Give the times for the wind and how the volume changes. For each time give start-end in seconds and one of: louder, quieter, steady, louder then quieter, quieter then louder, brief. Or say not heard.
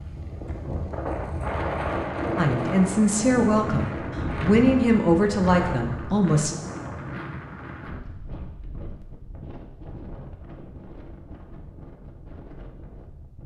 0.0-13.4 quieter.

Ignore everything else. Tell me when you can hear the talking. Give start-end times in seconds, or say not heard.
2.4-6.5.